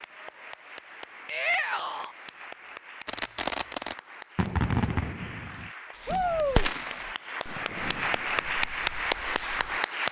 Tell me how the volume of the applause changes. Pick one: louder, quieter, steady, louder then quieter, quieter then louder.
louder.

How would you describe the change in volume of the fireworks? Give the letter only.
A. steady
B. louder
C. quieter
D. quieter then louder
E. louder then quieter
C.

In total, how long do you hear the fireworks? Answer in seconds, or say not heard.
7 s.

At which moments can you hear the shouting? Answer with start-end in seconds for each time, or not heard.
1.2-2.1, 6.0-6.7.